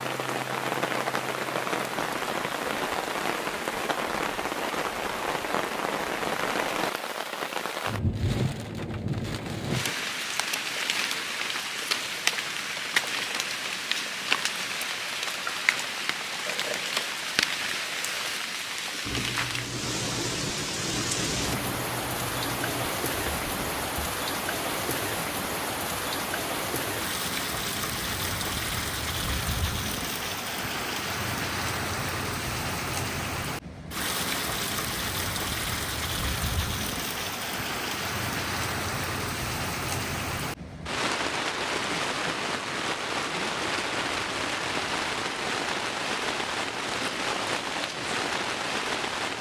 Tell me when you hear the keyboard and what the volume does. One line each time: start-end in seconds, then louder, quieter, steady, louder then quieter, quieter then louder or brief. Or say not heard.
19.0-23.9 steady.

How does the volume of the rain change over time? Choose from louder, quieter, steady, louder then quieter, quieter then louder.
steady.